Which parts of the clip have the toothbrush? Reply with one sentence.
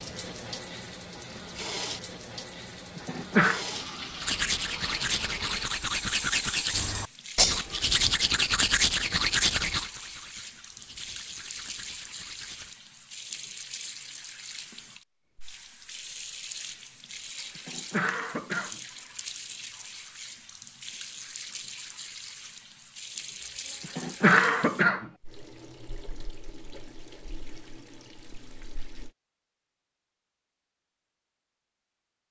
You can hear the toothbrush from 4.2 to 12.8 s.